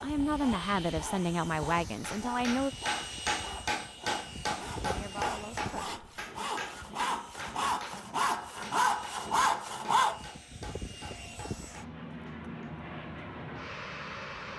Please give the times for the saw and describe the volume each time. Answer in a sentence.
The saw can be heard from 0.0 to 10.2 s, getting louder.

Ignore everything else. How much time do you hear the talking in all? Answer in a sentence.
You can hear the talking for 4 seconds altogether.